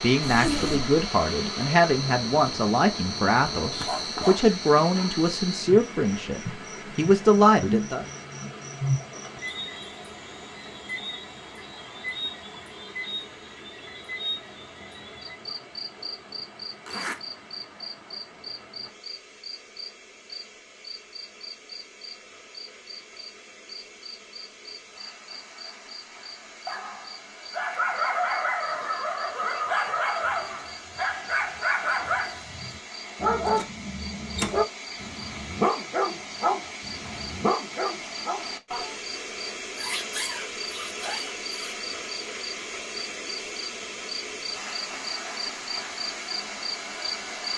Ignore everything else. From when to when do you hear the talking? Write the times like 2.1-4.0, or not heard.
0.0-8.1.